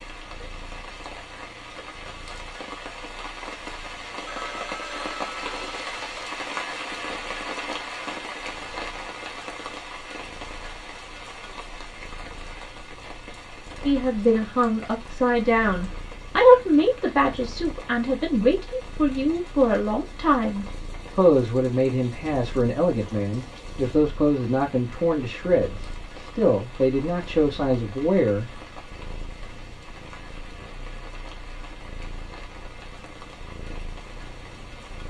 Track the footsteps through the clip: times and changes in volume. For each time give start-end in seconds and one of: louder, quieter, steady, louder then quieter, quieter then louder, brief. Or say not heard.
not heard.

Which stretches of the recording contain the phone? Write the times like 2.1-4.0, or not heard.
4.2-6.3.